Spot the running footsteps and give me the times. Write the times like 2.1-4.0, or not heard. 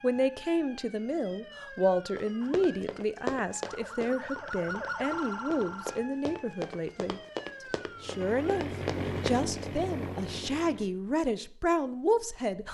2.1-9.7.